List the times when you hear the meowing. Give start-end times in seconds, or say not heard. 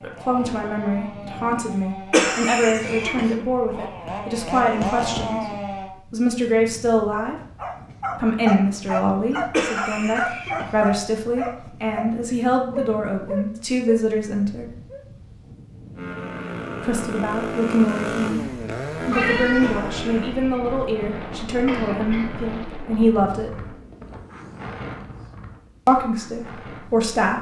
19.1-19.9.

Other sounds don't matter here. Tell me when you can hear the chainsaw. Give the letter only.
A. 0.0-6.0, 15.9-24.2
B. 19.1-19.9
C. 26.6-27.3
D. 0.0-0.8
A.